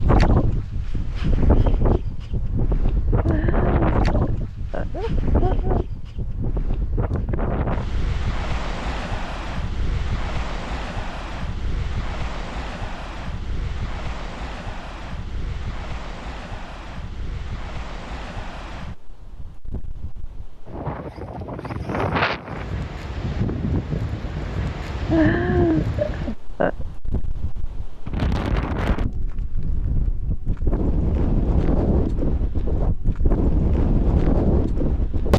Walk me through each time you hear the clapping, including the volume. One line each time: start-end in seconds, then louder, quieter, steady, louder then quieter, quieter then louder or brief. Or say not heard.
not heard.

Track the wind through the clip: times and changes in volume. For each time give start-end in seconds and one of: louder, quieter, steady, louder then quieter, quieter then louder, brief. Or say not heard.
0.0-35.3 quieter then louder.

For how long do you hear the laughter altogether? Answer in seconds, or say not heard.
4 s.